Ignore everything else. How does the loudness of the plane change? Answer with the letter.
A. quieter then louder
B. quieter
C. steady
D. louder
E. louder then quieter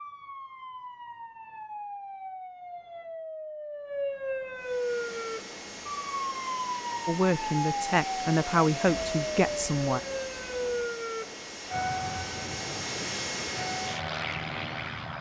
D.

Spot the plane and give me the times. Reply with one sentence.
You can hear the plane from 4.5 to 15.1 s.